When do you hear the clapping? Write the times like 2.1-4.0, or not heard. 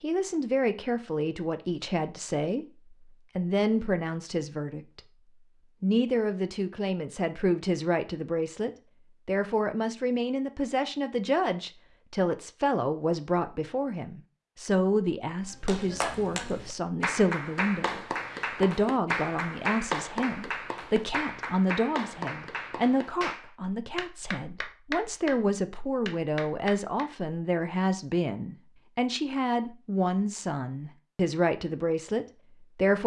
15.7-27.1.